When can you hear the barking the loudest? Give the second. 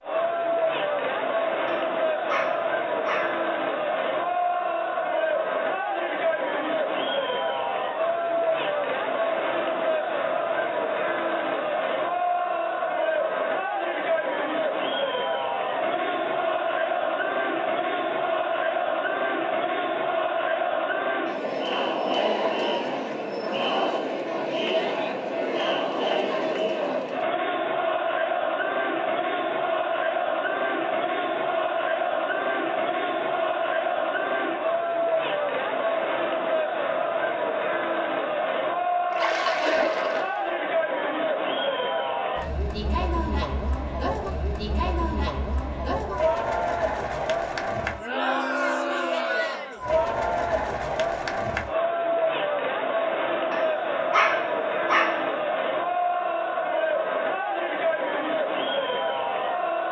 54 s.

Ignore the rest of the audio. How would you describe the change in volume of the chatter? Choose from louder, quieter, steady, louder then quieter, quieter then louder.
steady.